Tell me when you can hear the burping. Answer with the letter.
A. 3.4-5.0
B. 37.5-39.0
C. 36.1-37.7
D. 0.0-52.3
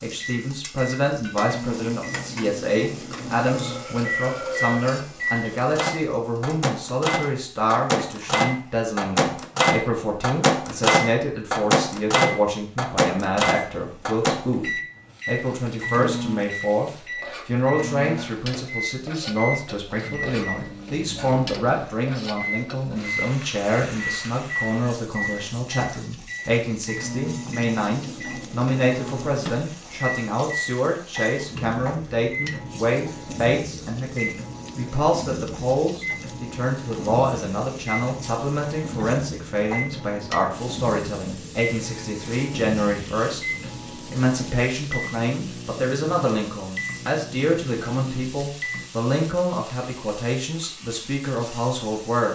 A.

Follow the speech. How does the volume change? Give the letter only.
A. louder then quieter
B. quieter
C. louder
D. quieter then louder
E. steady
E.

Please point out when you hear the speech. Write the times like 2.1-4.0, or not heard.
0.0-52.3.